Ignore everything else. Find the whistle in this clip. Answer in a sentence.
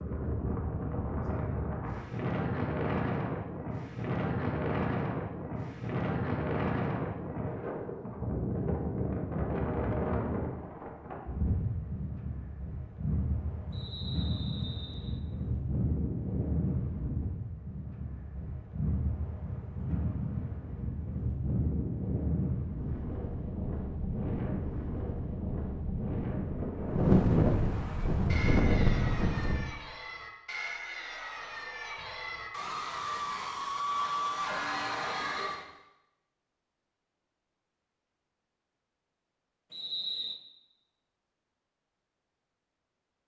You can hear the whistle from 13.7 to 15.2 s and from 39.7 to 40.4 s.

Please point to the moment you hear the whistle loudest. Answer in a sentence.
The loudest moment of the whistle is at 40 seconds.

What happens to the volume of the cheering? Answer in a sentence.
The loudness of the cheering goes up.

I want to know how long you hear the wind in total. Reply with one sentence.
You can hear the wind for 30 seconds altogether.